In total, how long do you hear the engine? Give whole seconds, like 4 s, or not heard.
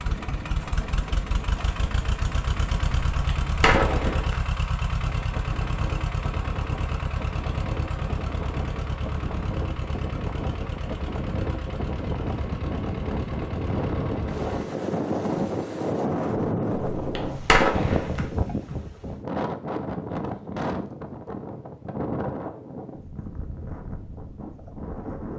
15 s.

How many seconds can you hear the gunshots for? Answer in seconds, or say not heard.
3 s.